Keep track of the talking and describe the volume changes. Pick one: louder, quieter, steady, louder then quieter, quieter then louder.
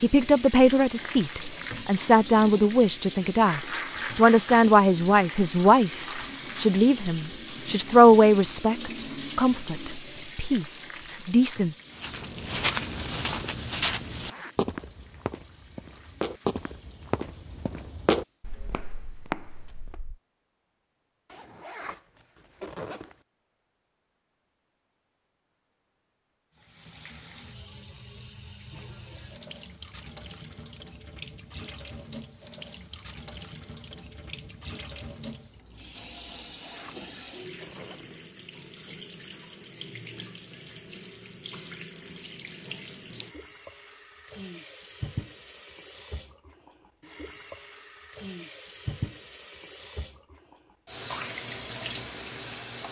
quieter.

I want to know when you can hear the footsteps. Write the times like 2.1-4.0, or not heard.
11.9-20.1.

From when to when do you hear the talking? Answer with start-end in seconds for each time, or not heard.
0.0-11.8.